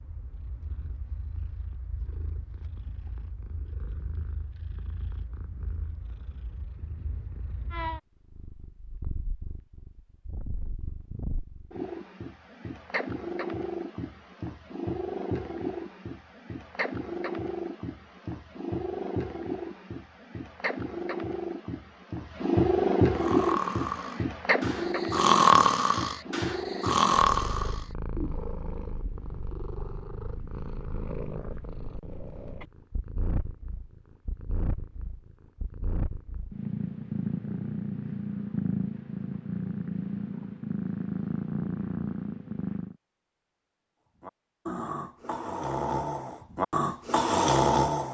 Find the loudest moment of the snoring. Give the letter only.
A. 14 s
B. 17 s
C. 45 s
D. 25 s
D.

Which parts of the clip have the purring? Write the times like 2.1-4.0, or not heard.
0.0-43.0.